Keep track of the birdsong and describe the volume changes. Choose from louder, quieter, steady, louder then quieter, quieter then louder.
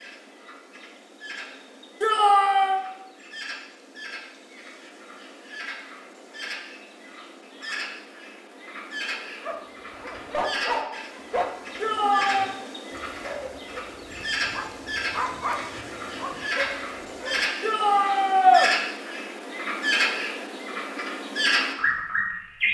louder.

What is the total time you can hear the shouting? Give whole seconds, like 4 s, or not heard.
3 s.